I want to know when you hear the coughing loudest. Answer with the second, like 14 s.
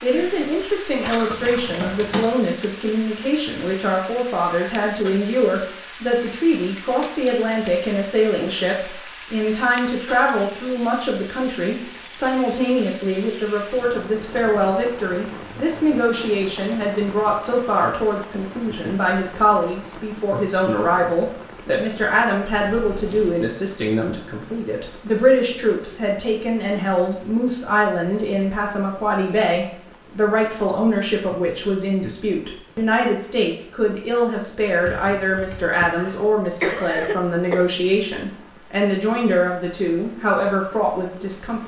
37 s.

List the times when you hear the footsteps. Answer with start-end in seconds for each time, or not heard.
not heard.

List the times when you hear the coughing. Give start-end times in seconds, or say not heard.
0.1-1.8, 35.9-37.6.